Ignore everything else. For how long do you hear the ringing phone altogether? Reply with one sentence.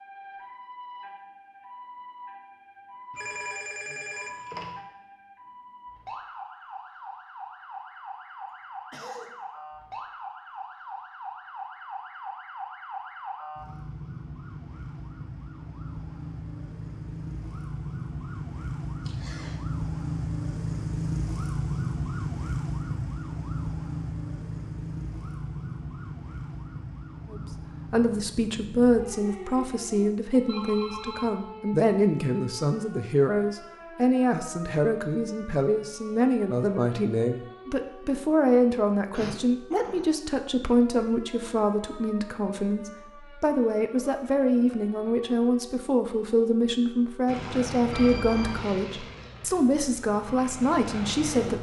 You can hear the ringing phone for 3 seconds altogether.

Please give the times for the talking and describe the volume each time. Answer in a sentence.
You can hear the talking from 27.3 to 51.5 s, at a steady volume.